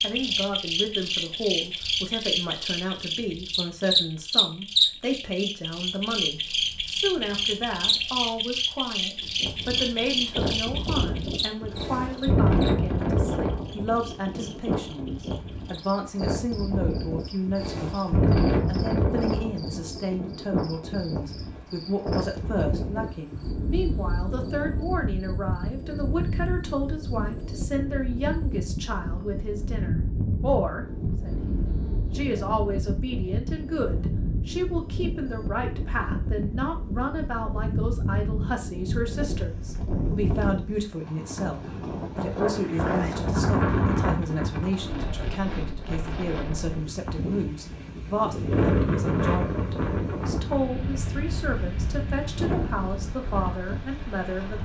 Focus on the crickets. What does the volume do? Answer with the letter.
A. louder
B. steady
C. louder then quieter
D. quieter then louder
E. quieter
E.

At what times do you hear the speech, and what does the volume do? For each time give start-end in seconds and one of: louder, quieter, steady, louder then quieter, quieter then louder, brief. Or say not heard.
0.0-54.5 steady.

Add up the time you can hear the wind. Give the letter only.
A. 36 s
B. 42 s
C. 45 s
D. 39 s
C.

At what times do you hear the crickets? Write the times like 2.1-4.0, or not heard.
0.0-28.6.